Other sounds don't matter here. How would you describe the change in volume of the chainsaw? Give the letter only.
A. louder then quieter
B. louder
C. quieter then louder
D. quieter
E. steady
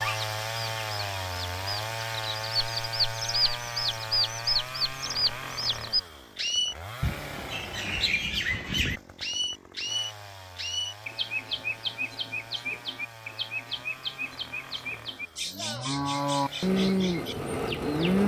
D.